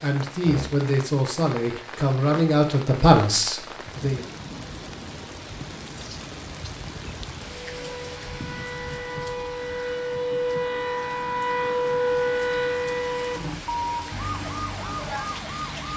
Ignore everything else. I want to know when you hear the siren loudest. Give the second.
12 s.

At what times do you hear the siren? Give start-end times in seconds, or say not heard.
7.5-15.9.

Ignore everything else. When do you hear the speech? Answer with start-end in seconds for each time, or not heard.
0.0-4.2.